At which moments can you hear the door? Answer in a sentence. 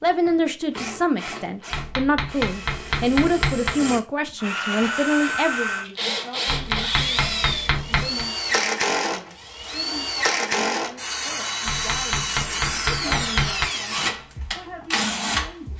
You can't hear the door here.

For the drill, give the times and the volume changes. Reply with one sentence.
The drill can be heard from 0.0 to 15.7 s, getting louder.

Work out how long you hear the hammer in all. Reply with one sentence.
You can hear the hammer for 6 seconds altogether.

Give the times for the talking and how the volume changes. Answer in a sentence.
You can hear the talking from 0.0 to 15.7 s, getting quieter.